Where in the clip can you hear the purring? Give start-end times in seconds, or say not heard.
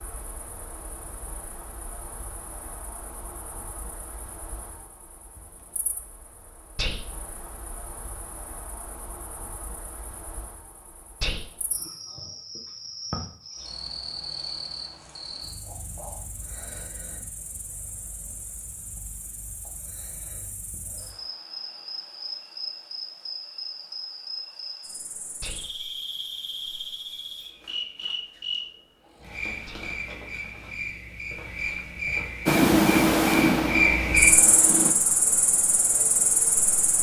32.5-35.0.